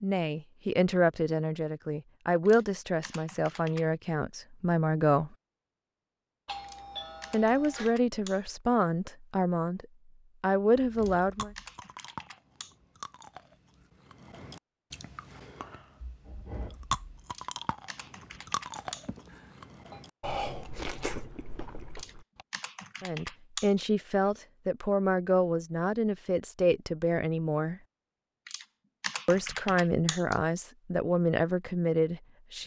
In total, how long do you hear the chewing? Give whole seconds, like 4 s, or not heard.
12 s.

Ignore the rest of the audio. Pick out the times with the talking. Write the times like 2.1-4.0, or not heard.
0.0-5.3, 7.3-11.5, 23.0-27.8, 29.2-32.6.